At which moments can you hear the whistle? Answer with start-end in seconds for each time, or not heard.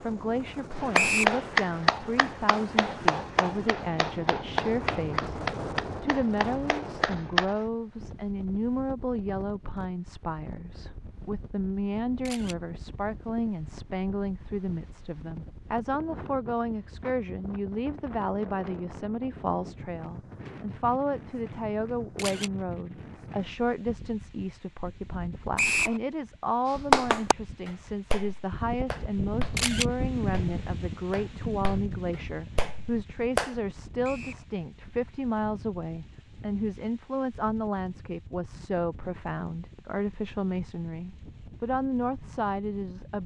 0.9-1.4, 25.6-26.0, 34.0-34.5.